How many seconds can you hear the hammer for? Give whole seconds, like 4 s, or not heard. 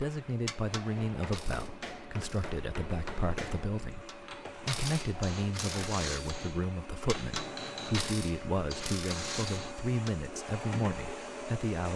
9 s.